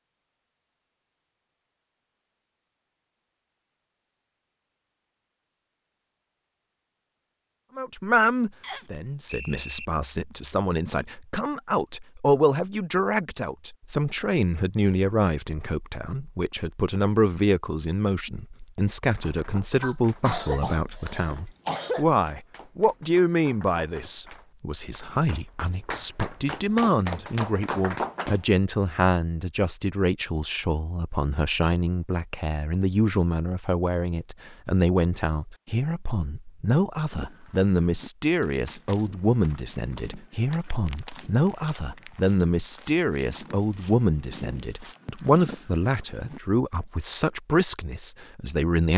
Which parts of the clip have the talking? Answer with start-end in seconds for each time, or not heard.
7.8-48.9.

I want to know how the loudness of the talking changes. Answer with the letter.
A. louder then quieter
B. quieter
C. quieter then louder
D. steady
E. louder
D.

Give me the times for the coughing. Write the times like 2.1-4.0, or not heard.
19.8-22.1.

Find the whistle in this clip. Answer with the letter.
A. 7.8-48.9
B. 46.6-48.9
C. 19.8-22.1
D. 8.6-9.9
D.